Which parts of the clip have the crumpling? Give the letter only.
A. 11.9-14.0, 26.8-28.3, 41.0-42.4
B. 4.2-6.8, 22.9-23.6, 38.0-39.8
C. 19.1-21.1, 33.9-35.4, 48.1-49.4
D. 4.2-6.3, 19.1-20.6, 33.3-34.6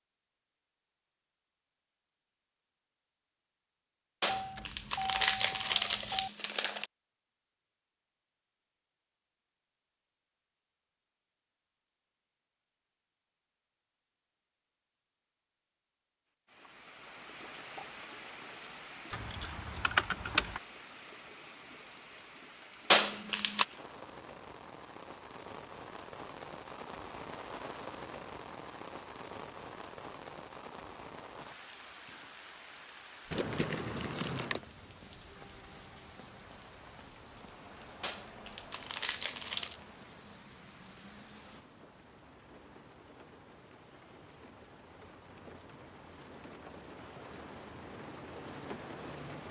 B.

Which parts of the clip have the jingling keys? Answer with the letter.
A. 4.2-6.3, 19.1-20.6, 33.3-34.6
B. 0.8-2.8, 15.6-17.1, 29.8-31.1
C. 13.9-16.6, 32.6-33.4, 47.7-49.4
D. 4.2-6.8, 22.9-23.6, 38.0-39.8
A.